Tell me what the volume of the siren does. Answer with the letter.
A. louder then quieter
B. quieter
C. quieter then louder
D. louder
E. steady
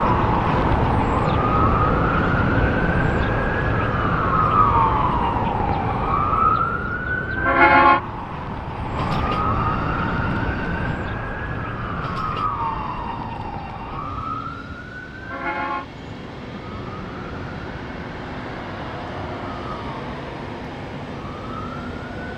B.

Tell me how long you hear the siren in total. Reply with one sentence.
You can hear the siren for 22 seconds altogether.